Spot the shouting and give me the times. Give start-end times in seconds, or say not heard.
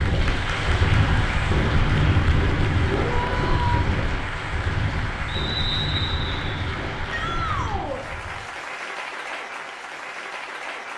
2.9-3.9, 7.1-8.1.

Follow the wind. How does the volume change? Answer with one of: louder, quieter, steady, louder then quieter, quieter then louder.
quieter.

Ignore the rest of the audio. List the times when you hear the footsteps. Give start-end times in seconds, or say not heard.
not heard.